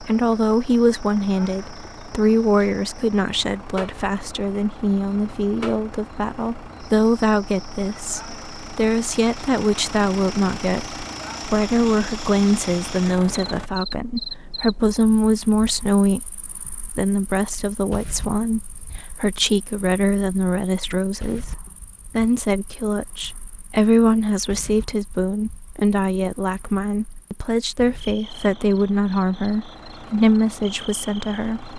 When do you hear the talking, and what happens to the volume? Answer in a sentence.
The talking can be heard from 0.0 to 31.7 s, at a steady volume.